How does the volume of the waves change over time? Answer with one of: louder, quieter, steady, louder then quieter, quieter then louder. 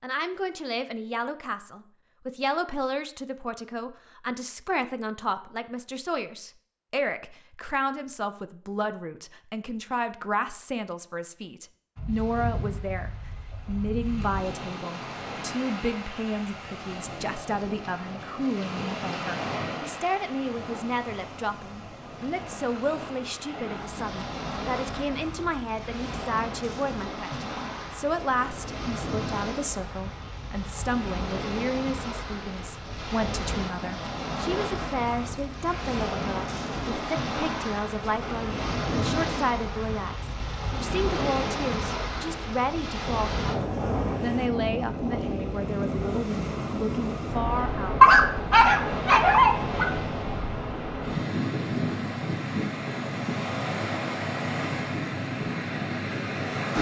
louder.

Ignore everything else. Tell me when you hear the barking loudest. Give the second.
48 s.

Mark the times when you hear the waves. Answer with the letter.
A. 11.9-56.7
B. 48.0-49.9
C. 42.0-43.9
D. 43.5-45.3
A.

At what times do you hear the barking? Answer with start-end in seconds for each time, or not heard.
48.0-49.9.